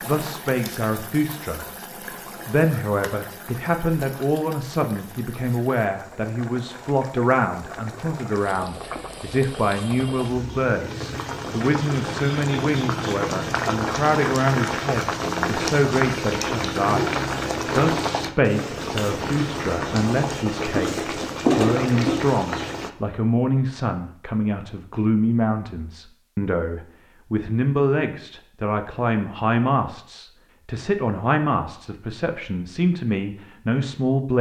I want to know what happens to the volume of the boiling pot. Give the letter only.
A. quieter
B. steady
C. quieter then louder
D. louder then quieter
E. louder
E.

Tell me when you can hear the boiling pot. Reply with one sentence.
The boiling pot can be heard from 0.0 to 22.9 s.